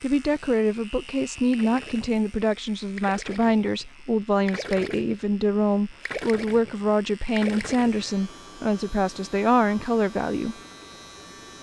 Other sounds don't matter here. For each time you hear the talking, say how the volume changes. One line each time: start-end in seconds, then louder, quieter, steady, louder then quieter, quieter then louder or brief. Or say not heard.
0.0-10.6 steady.